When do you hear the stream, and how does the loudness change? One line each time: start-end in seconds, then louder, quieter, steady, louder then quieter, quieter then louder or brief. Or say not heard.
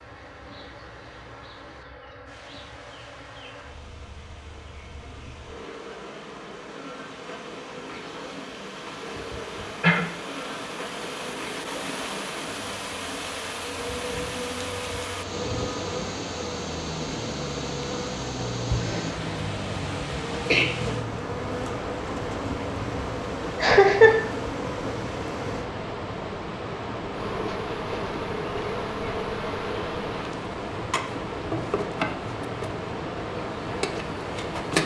0.0-34.8 louder.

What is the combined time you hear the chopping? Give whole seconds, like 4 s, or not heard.
not heard.